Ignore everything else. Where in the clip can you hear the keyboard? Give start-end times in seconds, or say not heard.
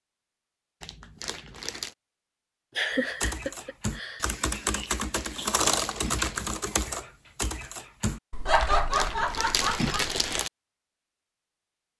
3.0-9.4.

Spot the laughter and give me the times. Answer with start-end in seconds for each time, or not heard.
2.8-4.3, 8.4-10.2.